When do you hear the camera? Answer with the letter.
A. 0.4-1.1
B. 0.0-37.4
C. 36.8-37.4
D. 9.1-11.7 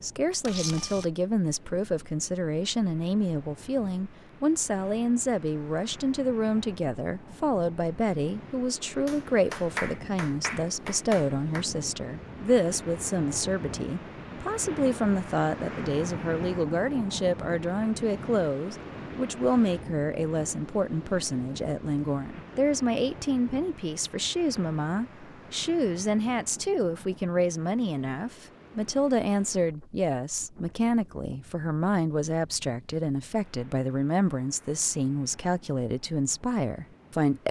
A.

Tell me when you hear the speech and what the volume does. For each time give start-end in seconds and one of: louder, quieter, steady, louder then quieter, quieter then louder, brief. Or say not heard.
0.0-37.4 steady.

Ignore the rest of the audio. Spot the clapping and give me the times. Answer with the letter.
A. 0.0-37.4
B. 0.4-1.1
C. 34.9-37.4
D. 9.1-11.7
D.